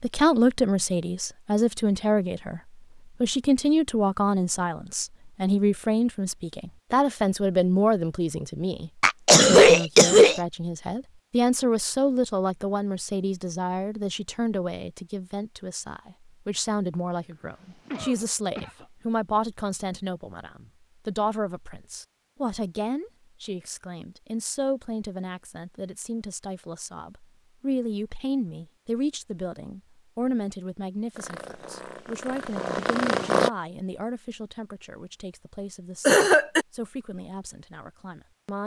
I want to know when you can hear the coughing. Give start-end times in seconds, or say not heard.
9.0-10.4, 17.7-18.9, 36.0-36.6.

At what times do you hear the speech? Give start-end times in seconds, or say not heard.
0.0-2.6, 3.2-38.6.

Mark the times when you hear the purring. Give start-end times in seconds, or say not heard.
31.1-33.5.